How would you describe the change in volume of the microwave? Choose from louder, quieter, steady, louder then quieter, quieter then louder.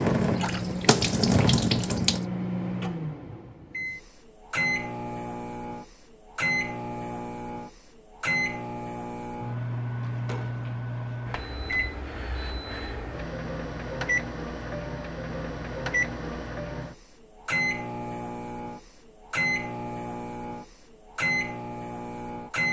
steady.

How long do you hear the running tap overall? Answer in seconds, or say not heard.
2 s.